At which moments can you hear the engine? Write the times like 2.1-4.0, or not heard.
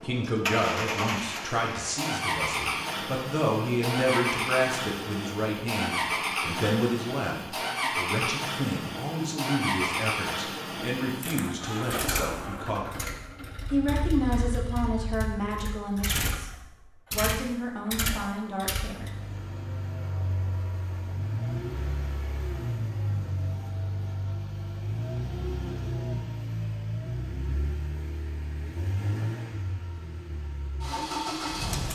0.0-31.9.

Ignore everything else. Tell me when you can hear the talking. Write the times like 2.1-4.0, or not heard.
0.0-13.0, 13.7-19.1.